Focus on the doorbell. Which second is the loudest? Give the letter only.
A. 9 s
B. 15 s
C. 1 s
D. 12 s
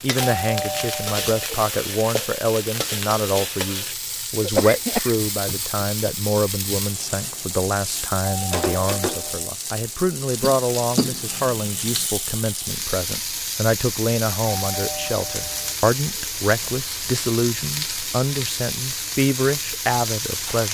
C.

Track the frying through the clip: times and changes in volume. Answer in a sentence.
The frying can be heard from 0.0 to 20.6 s, at a steady volume.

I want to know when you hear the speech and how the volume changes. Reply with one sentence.
The speech can be heard from 0.0 to 20.6 s, at a steady volume.